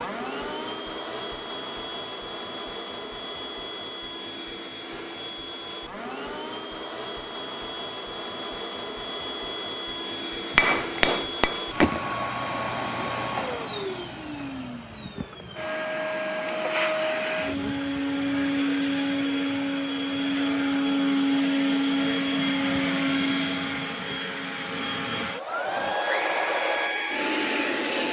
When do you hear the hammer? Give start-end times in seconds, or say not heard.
10.5-12.0.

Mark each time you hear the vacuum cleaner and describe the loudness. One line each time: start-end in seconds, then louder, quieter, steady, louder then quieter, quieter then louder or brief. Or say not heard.
0.0-28.0 louder.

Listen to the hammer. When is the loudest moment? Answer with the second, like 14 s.
11 s.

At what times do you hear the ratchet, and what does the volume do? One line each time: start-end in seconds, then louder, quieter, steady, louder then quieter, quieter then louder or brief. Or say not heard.
not heard.